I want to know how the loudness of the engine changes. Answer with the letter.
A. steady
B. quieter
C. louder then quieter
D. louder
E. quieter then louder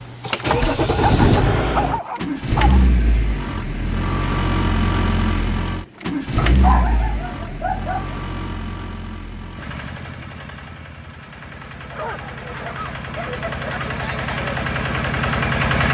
E.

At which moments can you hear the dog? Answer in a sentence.
The dog can be heard from 1.0 to 2.9 s, from 6.3 to 8.2 s and from 11.9 to 13.8 s.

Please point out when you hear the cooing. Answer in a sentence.
You can't hear the cooing here.